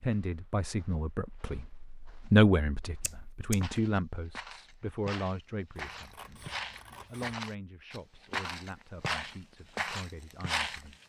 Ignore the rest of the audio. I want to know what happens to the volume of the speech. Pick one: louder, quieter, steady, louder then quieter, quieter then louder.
quieter.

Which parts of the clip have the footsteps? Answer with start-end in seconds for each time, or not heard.
0.0-10.8.